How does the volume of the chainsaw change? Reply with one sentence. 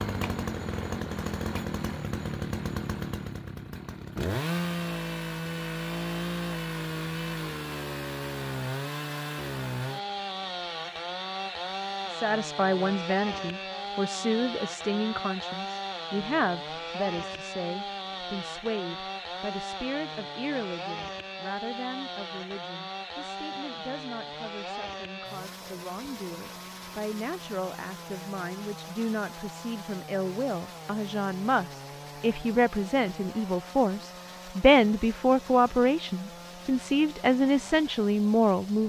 The volume of the chainsaw goes down.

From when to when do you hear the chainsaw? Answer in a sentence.
The chainsaw can be heard from 0.0 to 38.8 s.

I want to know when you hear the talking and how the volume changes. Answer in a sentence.
You can hear the talking from 12.1 to 38.8 s, getting quieter then louder.